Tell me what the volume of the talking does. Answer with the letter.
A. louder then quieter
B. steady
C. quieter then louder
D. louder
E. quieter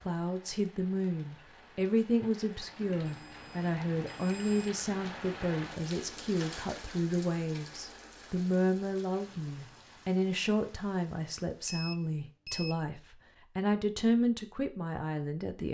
B.